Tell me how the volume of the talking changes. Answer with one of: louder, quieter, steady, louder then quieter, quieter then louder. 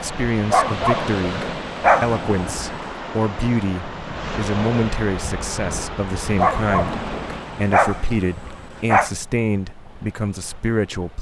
steady.